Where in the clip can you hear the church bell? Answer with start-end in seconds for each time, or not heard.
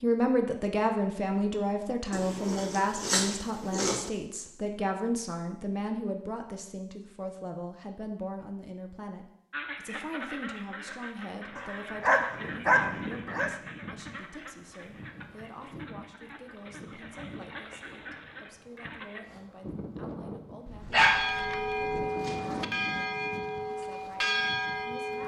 20.9-25.2.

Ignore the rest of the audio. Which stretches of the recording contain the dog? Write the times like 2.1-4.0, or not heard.
2.1-4.1, 11.6-13.5, 20.6-22.1.